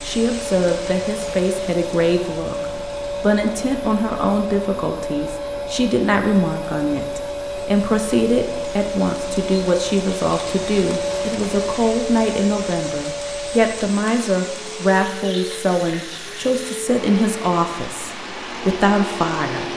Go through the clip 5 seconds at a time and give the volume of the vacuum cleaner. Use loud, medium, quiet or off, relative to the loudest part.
loud, loud, loud, medium.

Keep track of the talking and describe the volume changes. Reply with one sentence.
The volume of the talking stays about the same.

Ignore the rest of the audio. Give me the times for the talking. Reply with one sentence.
You can hear the talking from 0.0 to 19.7 s.